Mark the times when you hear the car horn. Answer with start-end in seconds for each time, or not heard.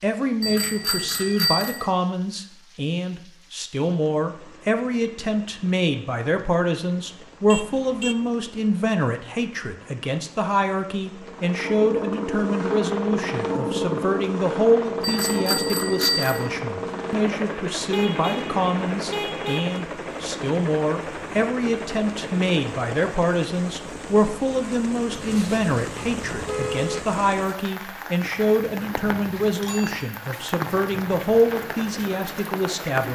7.5-8.2, 17.9-19.9, 25.1-27.1.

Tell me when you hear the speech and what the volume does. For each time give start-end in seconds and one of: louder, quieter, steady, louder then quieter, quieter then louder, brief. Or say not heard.
0.0-33.1 steady.